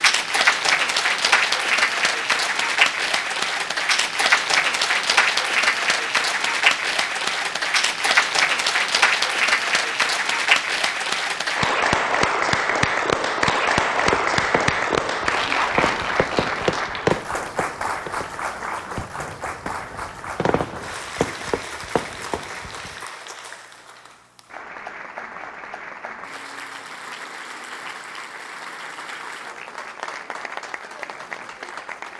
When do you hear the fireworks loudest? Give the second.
17 s.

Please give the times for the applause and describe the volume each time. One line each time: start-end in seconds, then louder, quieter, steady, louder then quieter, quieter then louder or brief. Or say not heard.
0.0-32.1 quieter.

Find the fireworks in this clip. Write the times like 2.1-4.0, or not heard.
14.0-22.9.